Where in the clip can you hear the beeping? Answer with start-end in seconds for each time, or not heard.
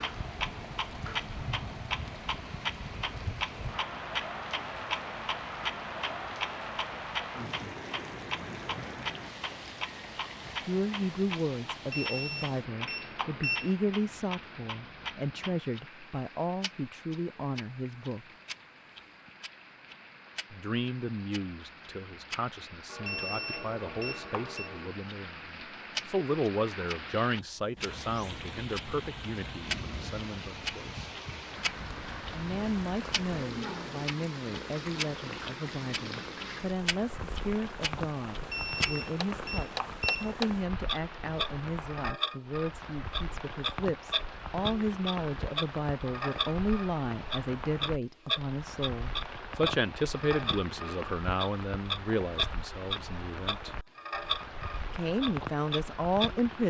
11.9-13.8, 23.1-24.7, 38.5-40.4.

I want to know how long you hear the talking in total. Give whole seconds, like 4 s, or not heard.
41 s.